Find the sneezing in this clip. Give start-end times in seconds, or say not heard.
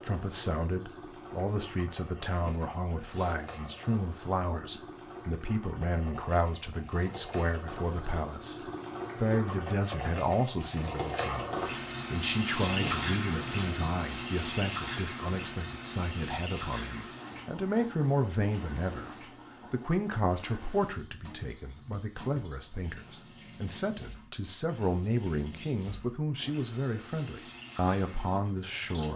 2.4-3.5, 12.8-13.8, 26.4-27.4.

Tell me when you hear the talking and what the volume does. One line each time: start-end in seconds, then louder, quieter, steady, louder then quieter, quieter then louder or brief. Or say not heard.
0.0-29.1 steady.